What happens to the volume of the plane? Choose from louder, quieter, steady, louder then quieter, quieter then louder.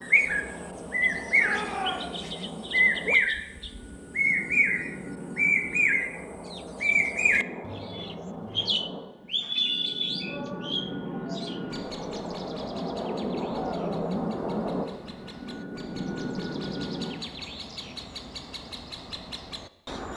louder.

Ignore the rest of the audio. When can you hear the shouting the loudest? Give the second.
2 s.